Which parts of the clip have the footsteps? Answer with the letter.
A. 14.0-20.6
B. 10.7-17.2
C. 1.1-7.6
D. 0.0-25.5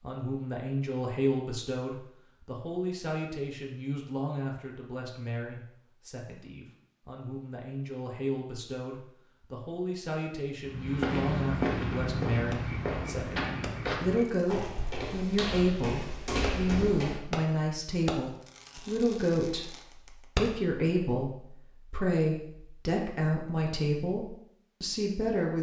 B.